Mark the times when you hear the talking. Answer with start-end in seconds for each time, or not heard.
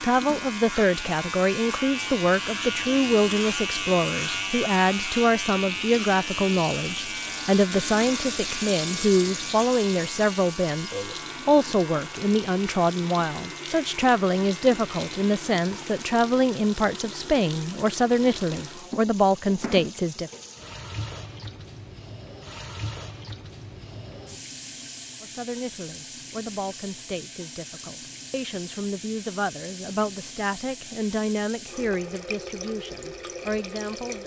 0.0-20.3, 25.2-34.2.